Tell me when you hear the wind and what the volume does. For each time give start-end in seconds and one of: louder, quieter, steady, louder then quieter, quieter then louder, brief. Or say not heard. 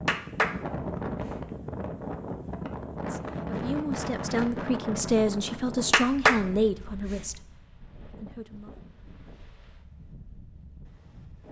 0.0-11.4 quieter.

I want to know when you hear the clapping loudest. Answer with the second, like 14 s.
6 s.